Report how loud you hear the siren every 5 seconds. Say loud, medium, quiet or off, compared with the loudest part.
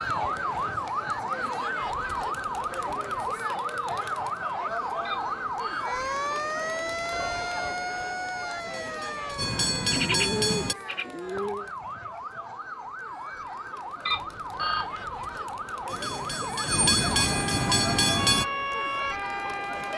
loud, loud, medium, loud.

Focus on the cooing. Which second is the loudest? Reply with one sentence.
The loudest moment of the cooing is at 10 seconds.